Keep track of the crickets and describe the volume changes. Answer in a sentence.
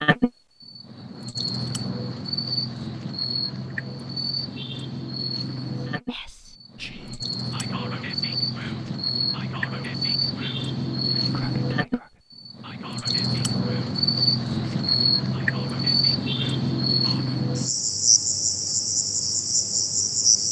The loudness of the crickets goes up.